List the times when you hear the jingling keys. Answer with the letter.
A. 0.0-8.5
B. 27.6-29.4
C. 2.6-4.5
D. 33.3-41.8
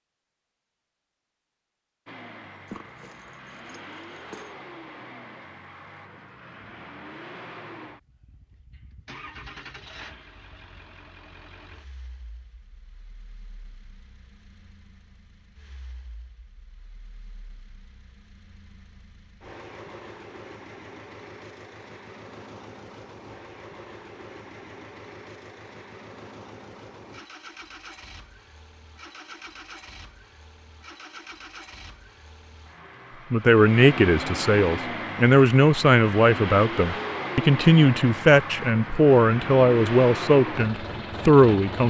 C.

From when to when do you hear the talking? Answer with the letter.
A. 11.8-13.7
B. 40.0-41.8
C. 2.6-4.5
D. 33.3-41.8
D.